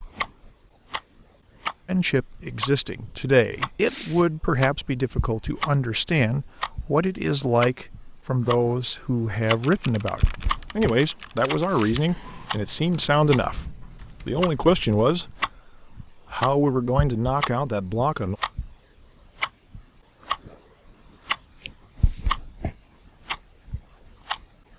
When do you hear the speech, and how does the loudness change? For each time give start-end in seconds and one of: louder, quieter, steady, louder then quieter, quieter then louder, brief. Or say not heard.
1.9-18.4 steady.